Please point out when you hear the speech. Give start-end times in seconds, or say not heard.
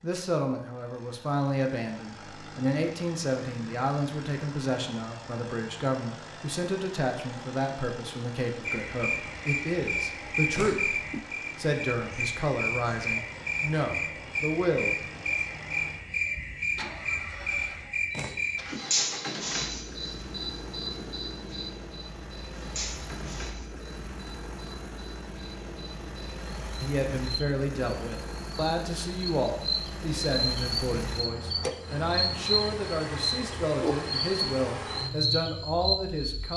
0.0-10.9, 11.6-15.0, 26.8-36.5.